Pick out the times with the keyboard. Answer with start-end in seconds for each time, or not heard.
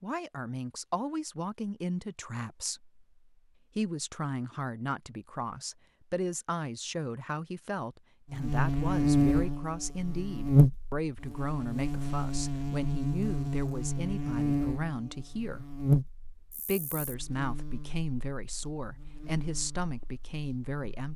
not heard.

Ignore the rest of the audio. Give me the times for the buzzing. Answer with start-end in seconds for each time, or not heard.
8.3-21.1.